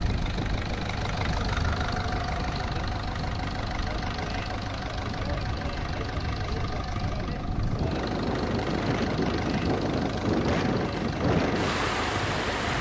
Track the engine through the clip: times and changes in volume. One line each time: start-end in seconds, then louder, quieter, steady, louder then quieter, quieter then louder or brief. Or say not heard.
0.0-12.7 steady.